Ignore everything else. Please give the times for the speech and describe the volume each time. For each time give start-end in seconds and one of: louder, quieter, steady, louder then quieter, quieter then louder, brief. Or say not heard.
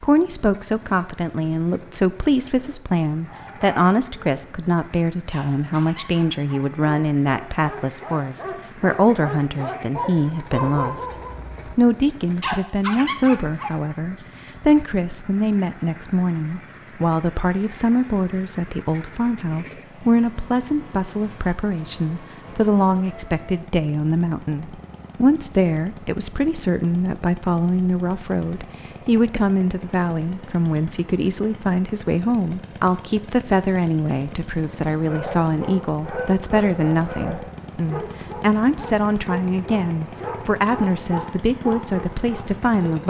0.0-43.0 steady.